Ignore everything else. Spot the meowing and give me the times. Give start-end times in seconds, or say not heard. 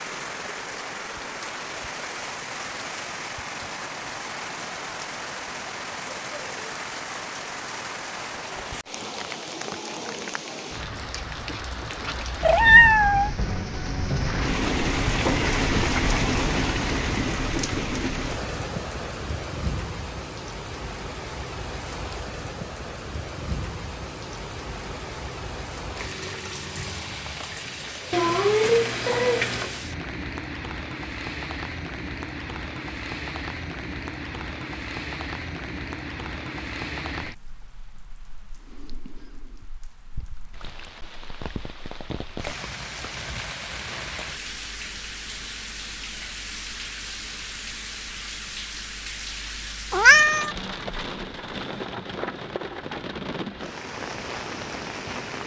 12.4-13.3, 28.1-29.8, 49.9-50.5.